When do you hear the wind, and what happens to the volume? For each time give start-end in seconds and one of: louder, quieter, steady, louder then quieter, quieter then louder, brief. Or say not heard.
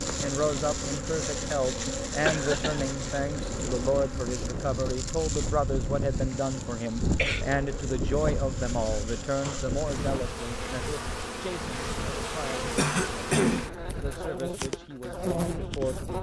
0.0-16.1 louder then quieter.